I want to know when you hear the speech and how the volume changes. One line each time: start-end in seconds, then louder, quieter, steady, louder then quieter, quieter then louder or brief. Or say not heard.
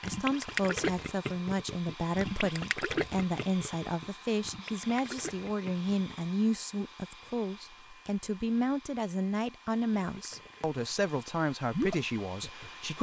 0.0-12.9 steady.